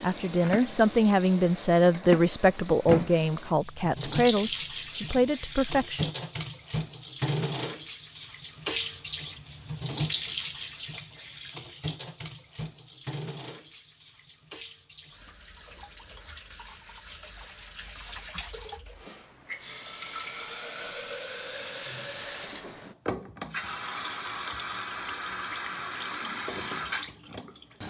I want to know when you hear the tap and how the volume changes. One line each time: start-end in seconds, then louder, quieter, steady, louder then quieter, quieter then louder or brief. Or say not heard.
0.0-27.8 quieter then louder.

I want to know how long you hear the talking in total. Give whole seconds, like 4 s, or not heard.
6 s.